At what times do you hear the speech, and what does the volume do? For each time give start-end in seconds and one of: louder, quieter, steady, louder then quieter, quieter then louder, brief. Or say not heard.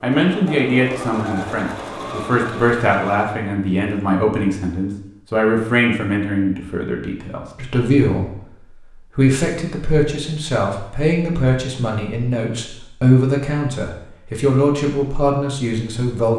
0.0-16.3 steady.